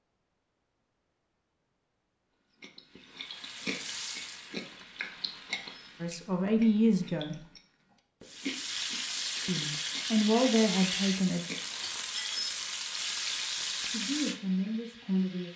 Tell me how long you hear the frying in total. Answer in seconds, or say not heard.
11 s.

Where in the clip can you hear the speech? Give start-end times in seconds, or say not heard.
6.0-7.5, 9.4-11.4, 13.9-15.5.